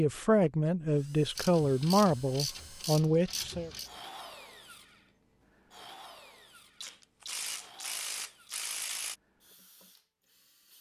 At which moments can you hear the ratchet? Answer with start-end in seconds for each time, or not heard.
1.4-3.9, 6.8-9.2.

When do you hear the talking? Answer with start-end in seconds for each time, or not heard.
0.0-3.7.